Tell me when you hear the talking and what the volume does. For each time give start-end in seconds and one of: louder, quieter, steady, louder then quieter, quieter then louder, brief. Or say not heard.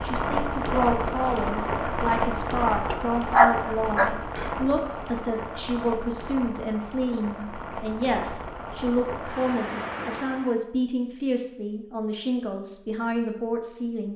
0.0-14.1 steady.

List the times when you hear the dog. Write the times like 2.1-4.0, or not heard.
2.9-4.5.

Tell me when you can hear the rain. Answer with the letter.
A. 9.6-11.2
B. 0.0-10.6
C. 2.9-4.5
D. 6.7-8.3
B.